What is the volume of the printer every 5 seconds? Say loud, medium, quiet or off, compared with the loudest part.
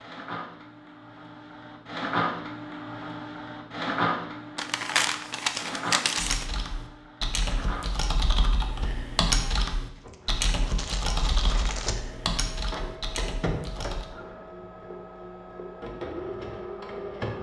loud, medium, medium, loud.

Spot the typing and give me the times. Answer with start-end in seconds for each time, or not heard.
6.2-14.1.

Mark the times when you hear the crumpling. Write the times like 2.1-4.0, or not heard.
4.5-6.5, 9.9-11.9.